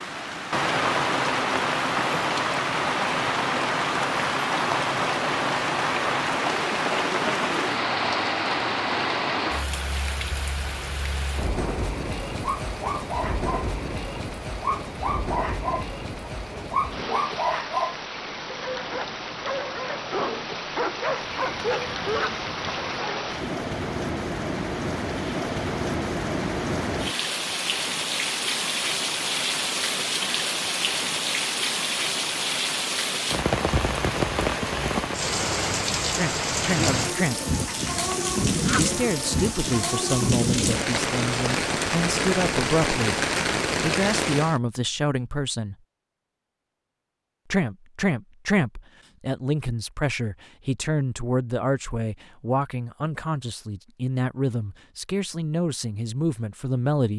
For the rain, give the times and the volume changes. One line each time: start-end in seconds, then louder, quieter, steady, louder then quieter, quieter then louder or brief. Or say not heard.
0.0-44.6 quieter then louder.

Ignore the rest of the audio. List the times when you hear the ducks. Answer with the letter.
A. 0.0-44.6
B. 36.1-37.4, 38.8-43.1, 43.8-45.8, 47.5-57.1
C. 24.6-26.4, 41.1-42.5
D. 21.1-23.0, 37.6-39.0
D.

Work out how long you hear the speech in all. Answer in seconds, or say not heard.
17 s.